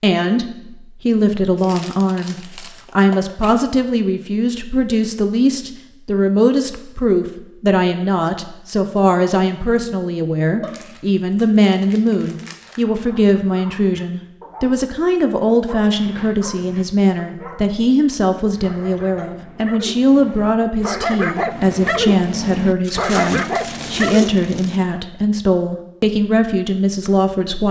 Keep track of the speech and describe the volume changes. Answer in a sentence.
The volume of the speech stays about the same.